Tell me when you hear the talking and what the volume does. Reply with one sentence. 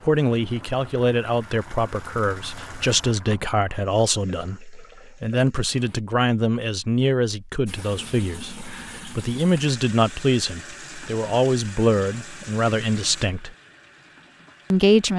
The talking can be heard from 0.0 to 13.5 s, at a steady volume; and briefly from 14.7 to 15.1 s.